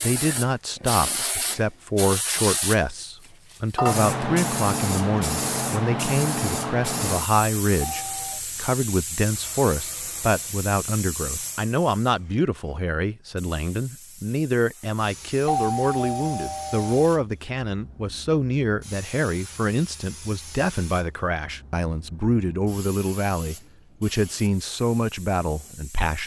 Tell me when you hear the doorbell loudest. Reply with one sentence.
The volume of the doorbell peaks at 16 seconds.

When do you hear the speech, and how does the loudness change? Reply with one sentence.
You can hear the speech from 0.0 to 26.2 s, at a steady volume.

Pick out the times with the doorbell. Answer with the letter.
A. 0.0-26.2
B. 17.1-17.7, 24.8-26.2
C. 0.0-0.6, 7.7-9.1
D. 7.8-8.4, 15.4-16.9
D.